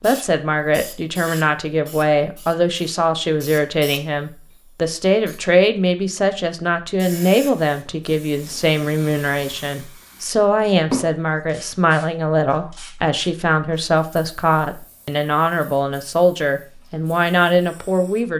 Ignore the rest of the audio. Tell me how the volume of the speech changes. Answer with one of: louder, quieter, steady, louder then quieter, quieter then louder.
steady.